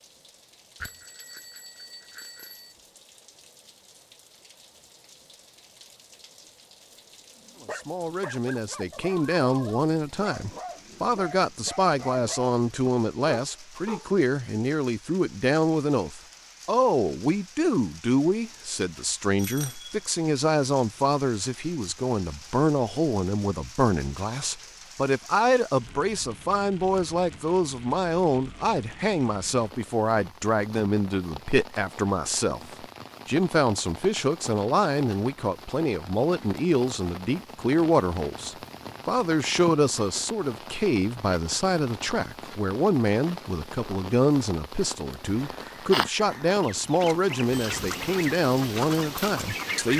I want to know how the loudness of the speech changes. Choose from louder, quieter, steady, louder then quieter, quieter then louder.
steady.